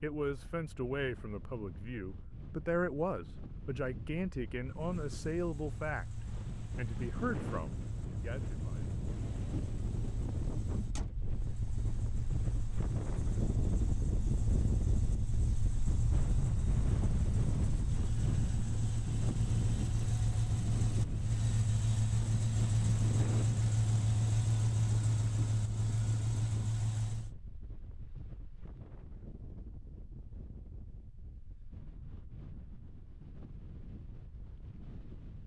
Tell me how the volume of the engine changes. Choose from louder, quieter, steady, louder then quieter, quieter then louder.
louder.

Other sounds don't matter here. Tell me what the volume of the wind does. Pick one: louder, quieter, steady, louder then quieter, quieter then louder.
louder then quieter.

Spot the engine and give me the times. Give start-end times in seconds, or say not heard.
4.7-27.4.